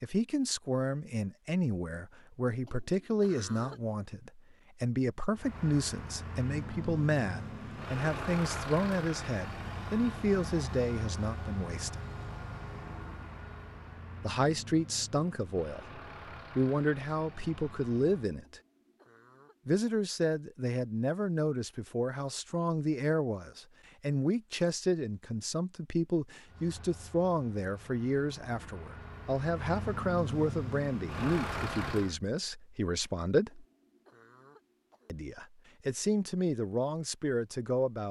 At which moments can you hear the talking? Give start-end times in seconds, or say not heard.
0.0-11.9, 14.2-18.6, 19.6-33.6, 35.0-38.0.